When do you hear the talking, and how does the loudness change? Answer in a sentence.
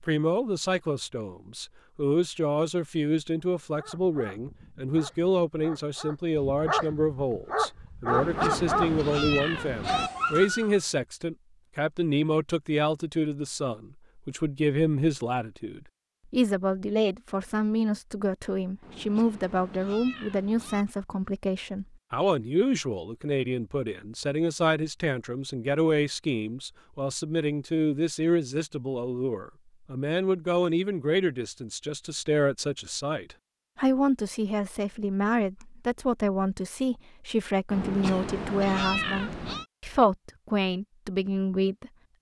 The talking can be heard from 0.0 to 41.9 s, at a steady volume.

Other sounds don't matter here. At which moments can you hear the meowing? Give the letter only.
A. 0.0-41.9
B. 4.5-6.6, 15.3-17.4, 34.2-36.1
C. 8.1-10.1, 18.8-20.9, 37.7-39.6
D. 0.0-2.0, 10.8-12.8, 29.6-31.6
C.